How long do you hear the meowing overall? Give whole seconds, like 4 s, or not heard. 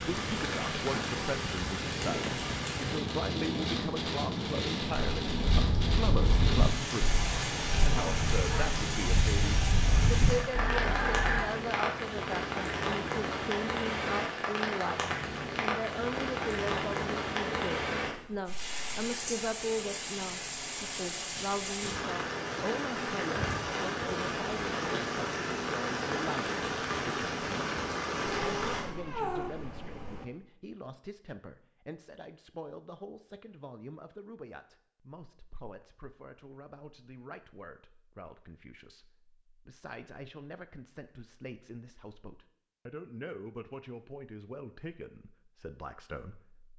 2 s.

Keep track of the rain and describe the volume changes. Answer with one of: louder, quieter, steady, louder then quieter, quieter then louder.
steady.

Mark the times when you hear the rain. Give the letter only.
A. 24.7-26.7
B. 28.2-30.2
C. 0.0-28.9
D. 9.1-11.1
C.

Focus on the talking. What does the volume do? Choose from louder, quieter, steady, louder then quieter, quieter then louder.
quieter.